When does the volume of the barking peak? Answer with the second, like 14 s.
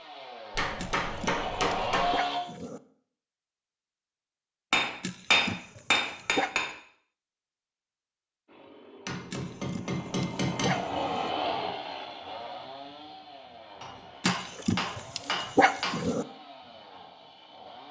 16 s.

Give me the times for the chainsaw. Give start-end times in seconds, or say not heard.
0.0-2.4, 8.4-17.8.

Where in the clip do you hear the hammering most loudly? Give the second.
5 s.